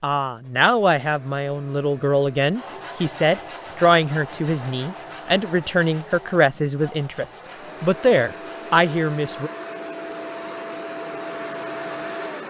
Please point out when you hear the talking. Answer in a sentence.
You can hear the talking from 0.0 to 9.5 s.